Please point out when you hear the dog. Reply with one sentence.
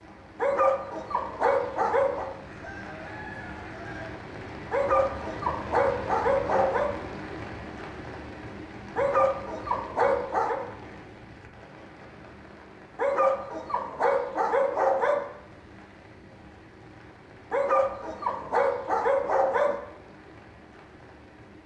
The dog can be heard from 0.3 to 2.3 s, from 4.7 to 6.9 s, from 8.9 to 10.6 s, from 12.9 to 15.2 s and from 17.5 to 19.8 s.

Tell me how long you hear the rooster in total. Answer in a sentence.
The rooster can be heard for 2 seconds in total.